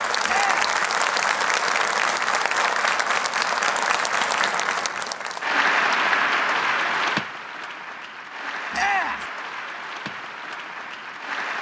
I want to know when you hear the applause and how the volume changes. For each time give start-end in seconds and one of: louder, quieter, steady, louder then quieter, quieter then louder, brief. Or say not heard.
0.0-11.5 quieter.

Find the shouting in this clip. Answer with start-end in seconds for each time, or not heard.
0.2-0.8, 8.7-9.2.